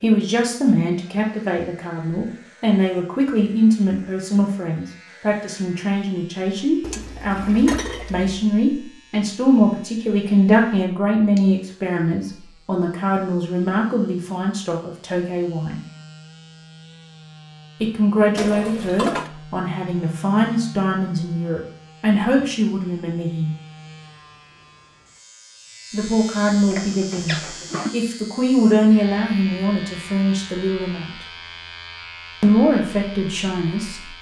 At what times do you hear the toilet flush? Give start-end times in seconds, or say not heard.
6.8-8.4, 18.4-19.3, 26.7-27.9.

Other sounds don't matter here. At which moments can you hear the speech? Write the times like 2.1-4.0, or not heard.
0.0-15.8, 17.8-23.6, 25.9-31.2, 32.4-34.0.